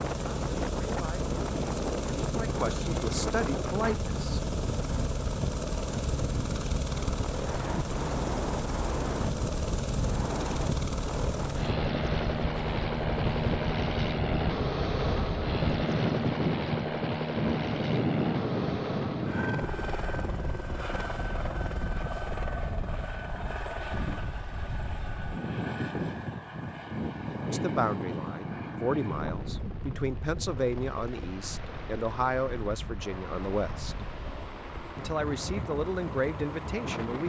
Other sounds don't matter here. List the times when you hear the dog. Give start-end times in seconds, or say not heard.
not heard.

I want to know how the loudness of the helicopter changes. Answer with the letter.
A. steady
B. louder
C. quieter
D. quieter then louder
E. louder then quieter
C.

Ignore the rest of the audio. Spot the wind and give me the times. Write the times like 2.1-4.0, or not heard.
0.0-37.2.